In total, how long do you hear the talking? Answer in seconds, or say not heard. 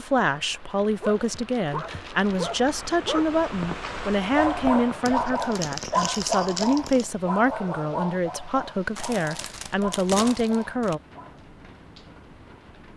11 s.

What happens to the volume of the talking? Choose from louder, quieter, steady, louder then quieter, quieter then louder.
steady.